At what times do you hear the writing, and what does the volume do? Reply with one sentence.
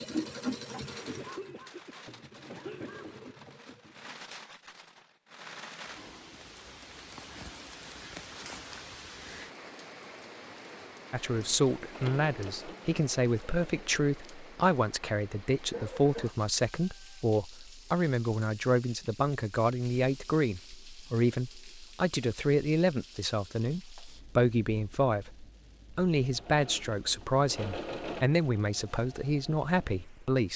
You can't hear the writing here.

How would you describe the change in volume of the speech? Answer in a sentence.
The loudness of the speech stays about the same.